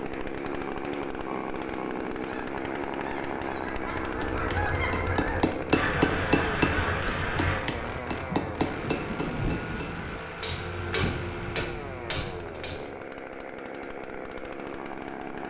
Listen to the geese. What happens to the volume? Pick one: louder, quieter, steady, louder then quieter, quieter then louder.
louder.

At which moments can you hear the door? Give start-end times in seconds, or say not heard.
not heard.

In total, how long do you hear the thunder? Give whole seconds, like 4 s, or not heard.
2 s.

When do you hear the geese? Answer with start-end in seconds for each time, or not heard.
2.1-7.6.